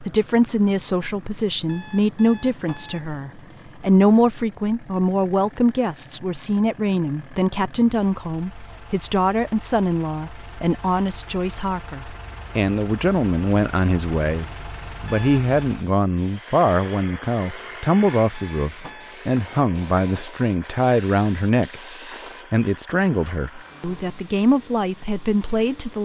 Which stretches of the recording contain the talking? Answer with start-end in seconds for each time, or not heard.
0.0-21.8, 22.5-26.0.